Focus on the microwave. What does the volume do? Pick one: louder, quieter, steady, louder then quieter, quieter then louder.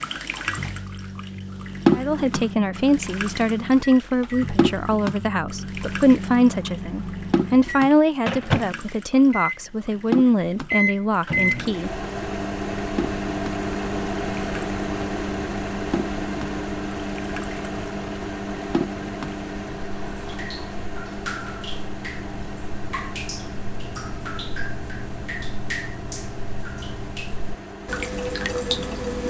louder then quieter.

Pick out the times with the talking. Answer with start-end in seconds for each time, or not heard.
1.9-11.9.